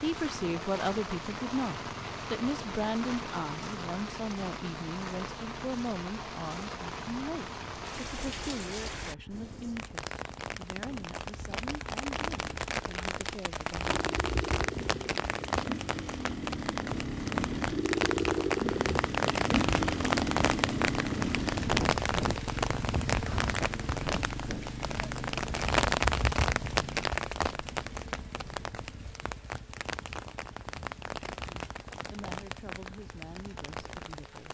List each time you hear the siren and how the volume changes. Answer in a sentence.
The siren can't be heard in this clip.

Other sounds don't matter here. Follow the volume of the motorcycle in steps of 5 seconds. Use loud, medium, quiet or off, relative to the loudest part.
quiet, quiet, medium, loud, loud, quiet, quiet.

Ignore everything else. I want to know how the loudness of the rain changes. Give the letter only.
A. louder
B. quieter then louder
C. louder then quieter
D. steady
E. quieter
C.